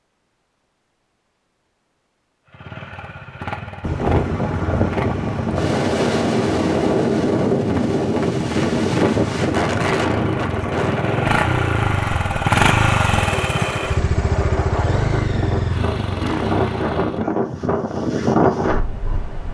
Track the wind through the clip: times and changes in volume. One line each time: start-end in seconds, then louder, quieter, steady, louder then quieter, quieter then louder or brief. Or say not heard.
3.8-19.4 quieter then louder.